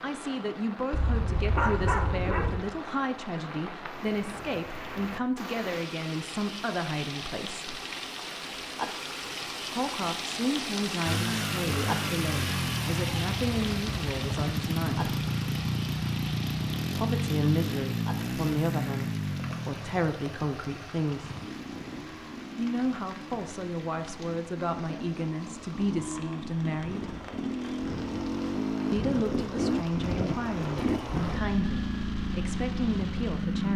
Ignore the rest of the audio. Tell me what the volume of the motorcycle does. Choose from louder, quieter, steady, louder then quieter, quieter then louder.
quieter then louder.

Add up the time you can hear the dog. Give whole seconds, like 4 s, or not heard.
2 s.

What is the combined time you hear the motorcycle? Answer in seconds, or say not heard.
23 s.